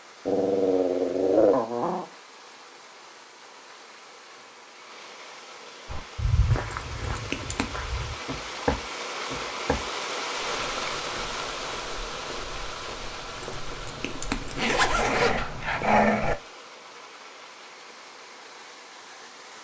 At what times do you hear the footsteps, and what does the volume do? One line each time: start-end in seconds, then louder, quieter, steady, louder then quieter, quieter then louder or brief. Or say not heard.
5.8-16.4 quieter then louder.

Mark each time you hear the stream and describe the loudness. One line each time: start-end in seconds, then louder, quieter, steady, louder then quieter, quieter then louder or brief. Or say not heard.
0.0-19.5 louder then quieter.